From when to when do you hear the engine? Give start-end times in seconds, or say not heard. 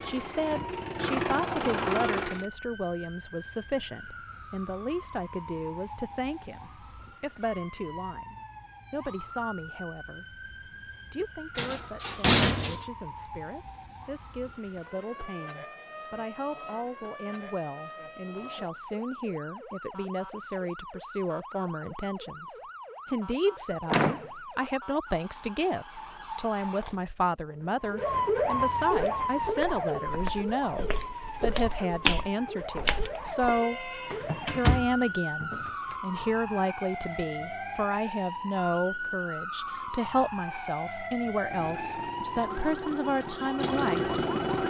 0.0-2.5, 41.4-44.6.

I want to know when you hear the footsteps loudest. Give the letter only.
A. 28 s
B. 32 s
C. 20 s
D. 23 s
B.